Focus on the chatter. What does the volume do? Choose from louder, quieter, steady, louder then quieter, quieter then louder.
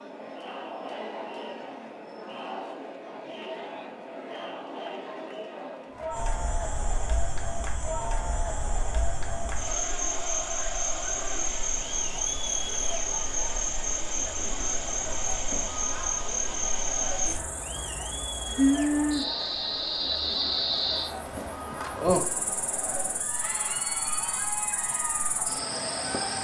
steady.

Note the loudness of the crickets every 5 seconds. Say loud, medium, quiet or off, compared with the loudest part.
off, medium, loud, loud, loud, medium.